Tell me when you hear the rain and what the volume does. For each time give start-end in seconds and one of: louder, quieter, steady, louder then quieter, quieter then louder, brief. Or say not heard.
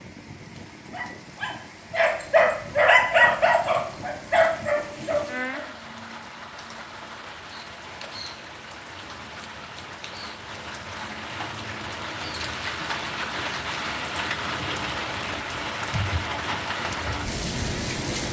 0.0-18.2 louder.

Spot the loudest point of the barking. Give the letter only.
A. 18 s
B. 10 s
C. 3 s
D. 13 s
C.